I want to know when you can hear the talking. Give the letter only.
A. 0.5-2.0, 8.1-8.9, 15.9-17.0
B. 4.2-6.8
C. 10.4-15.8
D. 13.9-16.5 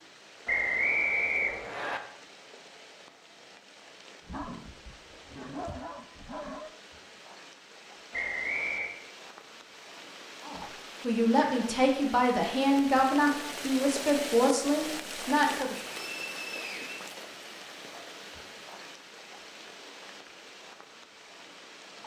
C.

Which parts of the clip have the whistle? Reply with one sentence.
The whistle can be heard from 0.5 to 2.0 s, from 8.1 to 8.9 s and from 15.9 to 17.0 s.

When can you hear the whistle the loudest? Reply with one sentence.
The loudest moment of the whistle is at 1 second.